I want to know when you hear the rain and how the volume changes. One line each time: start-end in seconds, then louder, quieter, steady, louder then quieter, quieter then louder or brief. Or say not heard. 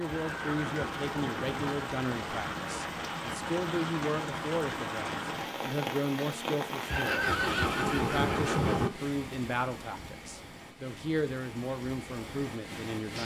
0.0-13.1 quieter.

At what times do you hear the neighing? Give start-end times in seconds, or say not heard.
0.1-1.8, 6.8-8.9.